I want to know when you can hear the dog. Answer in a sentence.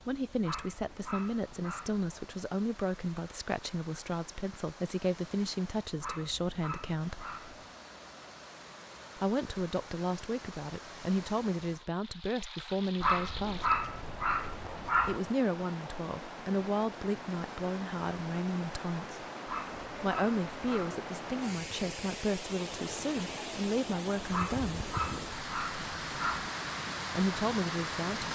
The dog can be heard from 0.4 to 2.4 s, from 6.0 to 7.7 s, from 13.0 to 15.2 s, from 19.4 to 21.0 s and from 24.3 to 26.5 s.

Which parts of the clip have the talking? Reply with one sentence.
The talking can be heard from 0.1 to 7.2 s, from 9.2 to 13.8 s, from 15.0 to 19.2 s, from 20.0 to 24.9 s and from 27.1 to 28.3 s.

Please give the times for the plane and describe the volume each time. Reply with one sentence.
The plane can't be heard in this clip.